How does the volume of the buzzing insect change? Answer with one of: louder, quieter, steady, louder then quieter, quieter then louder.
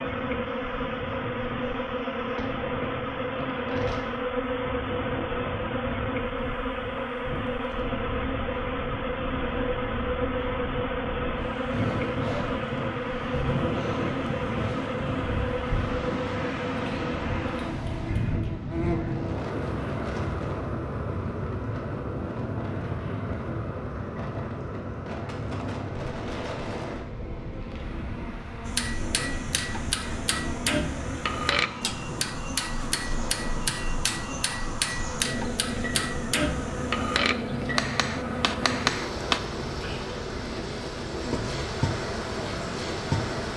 quieter then louder.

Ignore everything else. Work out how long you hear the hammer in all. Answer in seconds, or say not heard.
11 s.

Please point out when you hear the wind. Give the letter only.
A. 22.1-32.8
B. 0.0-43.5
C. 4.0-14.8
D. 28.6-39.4
B.